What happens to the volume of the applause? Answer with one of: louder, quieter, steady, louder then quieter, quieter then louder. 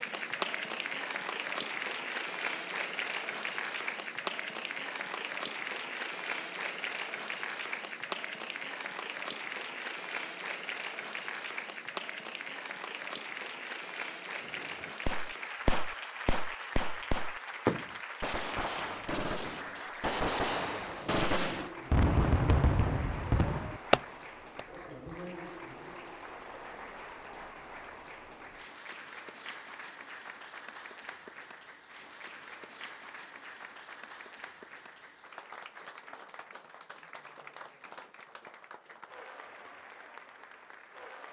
quieter.